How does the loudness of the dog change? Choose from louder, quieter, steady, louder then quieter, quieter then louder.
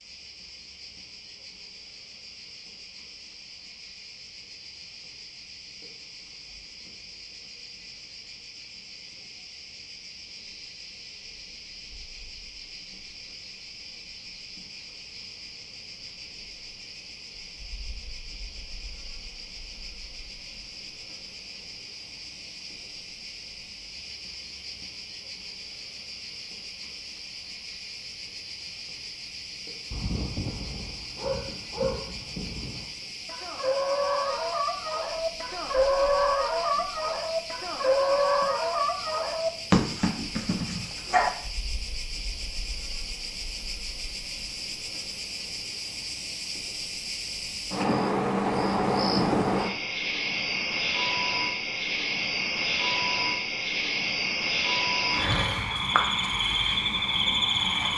louder.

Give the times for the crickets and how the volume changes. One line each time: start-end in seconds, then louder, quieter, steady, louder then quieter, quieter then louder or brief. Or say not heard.
0.0-57.9 louder.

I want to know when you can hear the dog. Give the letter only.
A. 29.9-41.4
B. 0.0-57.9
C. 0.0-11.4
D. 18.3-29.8
A.